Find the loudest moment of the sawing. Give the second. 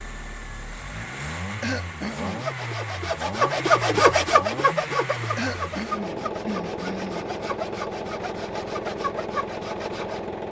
4 s.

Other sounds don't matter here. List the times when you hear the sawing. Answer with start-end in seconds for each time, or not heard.
2.1-10.2.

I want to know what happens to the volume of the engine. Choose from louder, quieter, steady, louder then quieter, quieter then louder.
steady.